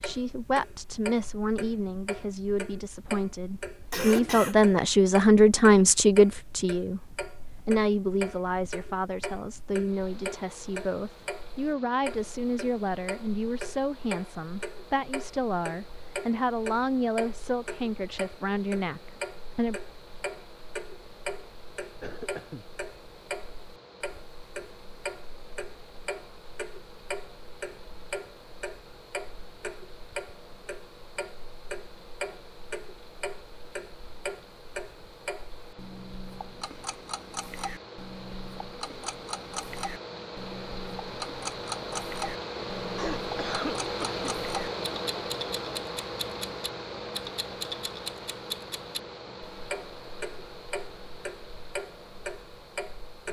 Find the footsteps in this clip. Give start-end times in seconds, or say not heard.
not heard.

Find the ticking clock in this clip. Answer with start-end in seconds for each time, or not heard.
0.0-53.2.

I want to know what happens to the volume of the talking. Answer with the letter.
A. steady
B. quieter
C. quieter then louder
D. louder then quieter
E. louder
D.